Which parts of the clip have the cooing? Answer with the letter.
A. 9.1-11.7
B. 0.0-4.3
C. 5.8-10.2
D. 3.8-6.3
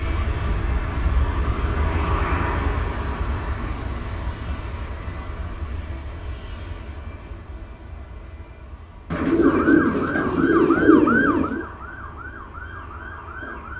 A.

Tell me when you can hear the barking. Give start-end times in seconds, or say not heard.
not heard.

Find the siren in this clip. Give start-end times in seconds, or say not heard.
9.3-13.7.